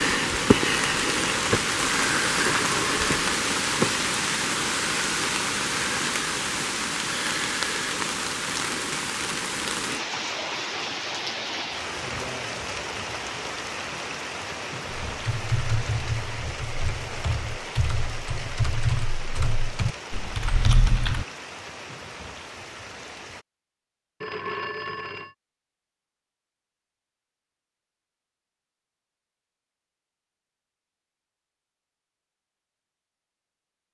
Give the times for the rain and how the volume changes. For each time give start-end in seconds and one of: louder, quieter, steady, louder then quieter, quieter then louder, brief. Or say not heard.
0.0-23.4 quieter.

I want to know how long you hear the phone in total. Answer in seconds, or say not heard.
2 s.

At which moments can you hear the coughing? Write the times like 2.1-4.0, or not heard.
not heard.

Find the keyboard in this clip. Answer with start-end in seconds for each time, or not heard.
15.2-21.2.